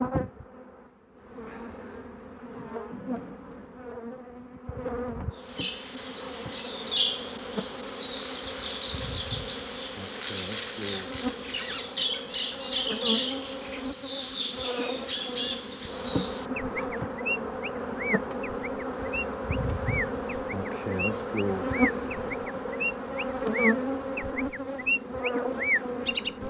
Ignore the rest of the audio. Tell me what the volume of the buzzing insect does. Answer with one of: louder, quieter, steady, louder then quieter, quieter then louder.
louder.